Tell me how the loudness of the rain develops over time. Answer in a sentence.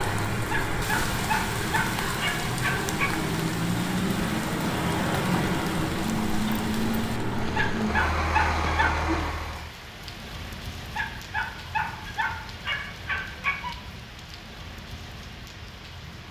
The loudness of the rain goes down.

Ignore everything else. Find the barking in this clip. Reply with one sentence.
You can hear the barking from 0.5 to 3.2 s, from 7.5 to 9.1 s and from 10.9 to 13.8 s.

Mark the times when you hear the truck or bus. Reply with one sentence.
You can hear the truck or bus from 0.0 to 9.7 s.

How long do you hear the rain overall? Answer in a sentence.
You can hear the rain for 16 seconds altogether.